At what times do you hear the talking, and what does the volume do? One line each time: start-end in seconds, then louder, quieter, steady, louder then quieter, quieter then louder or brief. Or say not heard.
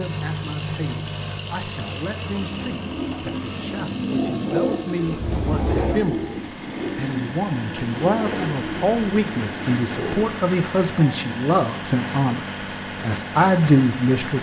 0.0-12.4 louder
13.0-14.3 brief.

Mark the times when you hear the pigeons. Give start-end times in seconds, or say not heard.
2.2-10.3.